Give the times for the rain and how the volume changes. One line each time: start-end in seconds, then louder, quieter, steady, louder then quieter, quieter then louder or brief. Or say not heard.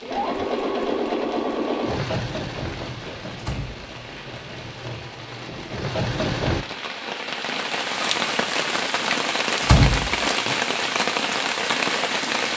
0.0-12.5 louder.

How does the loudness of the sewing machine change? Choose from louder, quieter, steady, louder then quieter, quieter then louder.
quieter then louder.